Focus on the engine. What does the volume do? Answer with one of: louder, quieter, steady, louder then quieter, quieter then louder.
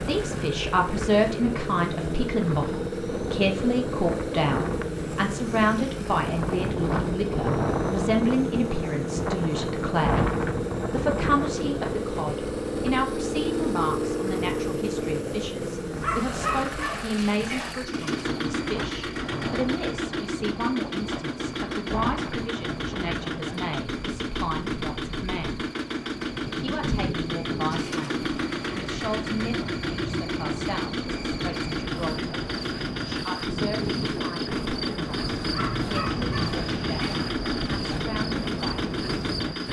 steady.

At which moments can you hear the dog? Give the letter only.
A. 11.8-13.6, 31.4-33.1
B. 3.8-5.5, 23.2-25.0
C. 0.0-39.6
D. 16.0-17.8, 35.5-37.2
D.